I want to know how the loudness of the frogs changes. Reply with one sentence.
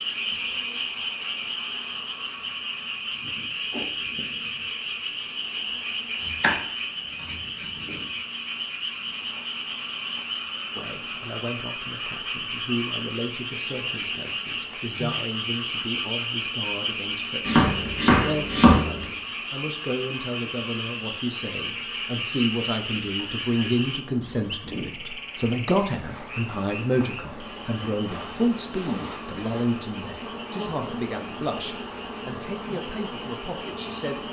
The loudness of the frogs goes down.